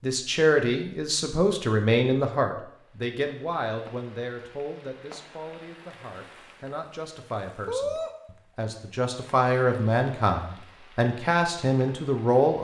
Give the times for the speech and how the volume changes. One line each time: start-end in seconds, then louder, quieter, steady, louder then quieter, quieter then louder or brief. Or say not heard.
0.0-12.5 quieter then louder.